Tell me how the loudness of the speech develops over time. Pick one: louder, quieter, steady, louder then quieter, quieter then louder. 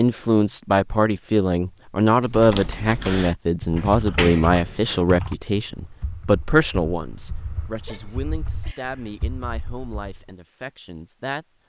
quieter.